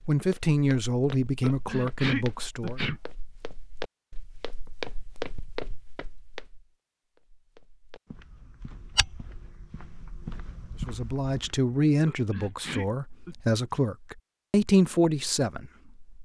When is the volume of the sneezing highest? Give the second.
2 s.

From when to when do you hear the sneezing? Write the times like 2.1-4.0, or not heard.
1.4-3.0, 12.1-13.3.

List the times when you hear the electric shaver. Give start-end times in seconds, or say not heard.
not heard.